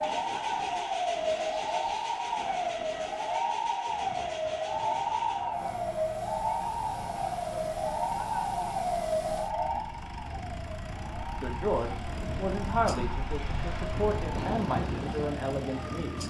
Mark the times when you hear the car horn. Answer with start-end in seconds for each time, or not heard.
not heard.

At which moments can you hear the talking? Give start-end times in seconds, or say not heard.
11.4-16.2.